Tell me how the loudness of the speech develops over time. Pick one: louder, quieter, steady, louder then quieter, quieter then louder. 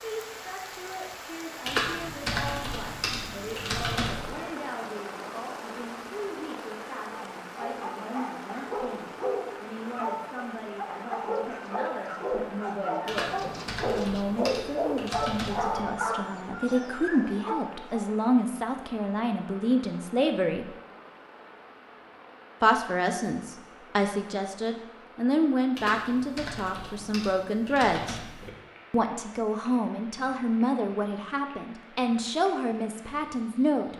louder.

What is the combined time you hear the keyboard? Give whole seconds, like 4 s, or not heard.
8 s.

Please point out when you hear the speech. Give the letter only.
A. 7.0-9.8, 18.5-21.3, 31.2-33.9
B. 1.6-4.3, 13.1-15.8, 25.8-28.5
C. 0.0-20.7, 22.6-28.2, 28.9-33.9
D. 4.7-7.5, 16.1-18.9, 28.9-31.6
C.